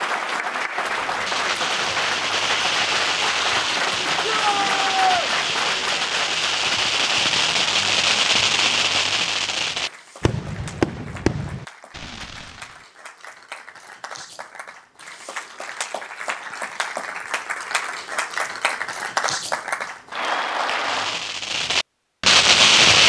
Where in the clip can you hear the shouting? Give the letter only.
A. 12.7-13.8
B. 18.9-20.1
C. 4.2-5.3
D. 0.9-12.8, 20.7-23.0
C.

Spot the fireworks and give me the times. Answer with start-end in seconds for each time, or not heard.
0.9-12.8, 20.7-23.0.